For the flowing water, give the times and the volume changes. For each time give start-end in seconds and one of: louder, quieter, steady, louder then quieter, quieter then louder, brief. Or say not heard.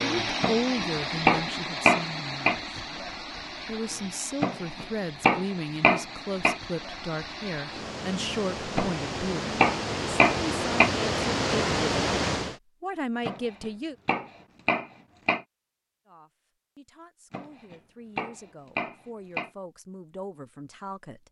0.0-12.6 quieter then louder.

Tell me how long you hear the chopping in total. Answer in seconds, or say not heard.
11 s.